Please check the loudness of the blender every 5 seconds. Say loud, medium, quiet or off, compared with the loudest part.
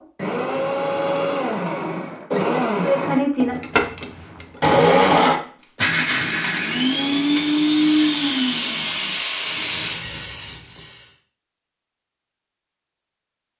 loud, loud, off.